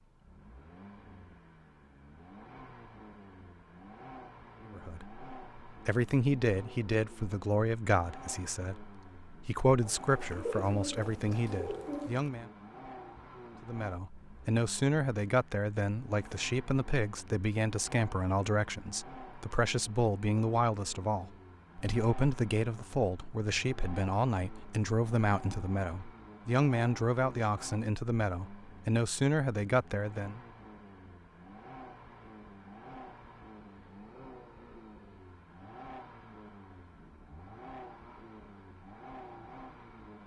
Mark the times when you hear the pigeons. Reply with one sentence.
The pigeons can be heard from 9.8 to 12.3 s.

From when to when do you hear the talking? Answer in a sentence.
You can hear the talking from 4.7 to 12.5 s and from 13.6 to 30.4 s.